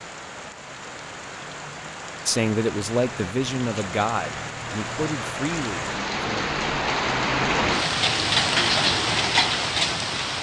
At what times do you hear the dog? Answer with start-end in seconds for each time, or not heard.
not heard.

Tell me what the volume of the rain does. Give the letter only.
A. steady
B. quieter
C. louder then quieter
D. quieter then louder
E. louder
E.